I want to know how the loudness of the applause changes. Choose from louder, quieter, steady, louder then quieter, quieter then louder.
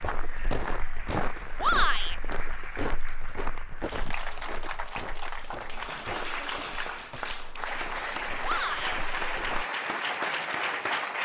louder.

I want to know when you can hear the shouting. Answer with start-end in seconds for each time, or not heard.
1.6-2.1, 8.4-9.0.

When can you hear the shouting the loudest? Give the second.
2 s.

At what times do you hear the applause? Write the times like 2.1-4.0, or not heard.
0.0-11.2.